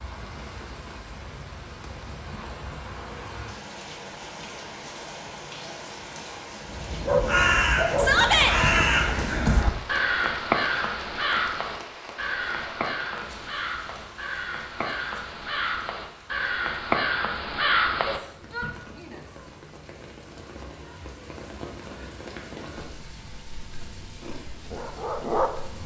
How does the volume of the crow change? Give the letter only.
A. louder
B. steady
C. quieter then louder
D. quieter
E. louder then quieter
C.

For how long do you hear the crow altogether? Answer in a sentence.
The crow can be heard for 12 seconds in total.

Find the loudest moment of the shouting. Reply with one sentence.
The loudest moment of the shouting is at 8 seconds.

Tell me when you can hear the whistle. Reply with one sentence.
You can't hear the whistle here.